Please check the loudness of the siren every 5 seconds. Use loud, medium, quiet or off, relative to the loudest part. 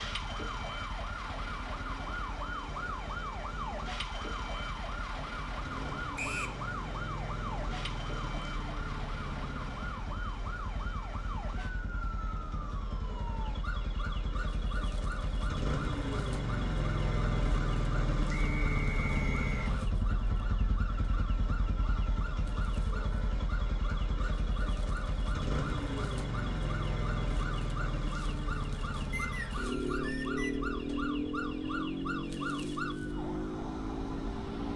loud, loud, medium, medium, medium, medium, loud.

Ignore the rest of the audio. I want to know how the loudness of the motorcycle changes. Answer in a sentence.
The volume of the motorcycle goes up.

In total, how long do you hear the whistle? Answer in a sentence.
You can hear the whistle for 3 seconds altogether.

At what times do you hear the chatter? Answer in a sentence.
The chatter can't be heard in this clip.